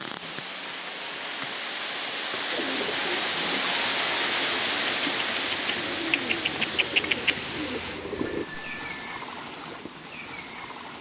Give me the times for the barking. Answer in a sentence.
The barking can't be heard in this clip.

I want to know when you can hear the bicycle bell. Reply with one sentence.
The bicycle bell can be heard from 8.2 to 9.2 s.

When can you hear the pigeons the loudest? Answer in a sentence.
The loudest moment of the pigeons is at 7 seconds.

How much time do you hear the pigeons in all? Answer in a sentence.
You can hear the pigeons for 6 seconds altogether.